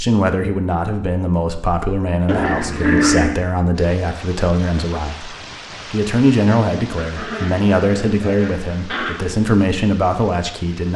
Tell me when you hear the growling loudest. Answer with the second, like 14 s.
3 s.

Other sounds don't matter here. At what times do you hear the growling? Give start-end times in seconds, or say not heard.
2.2-3.4, 7.0-9.2.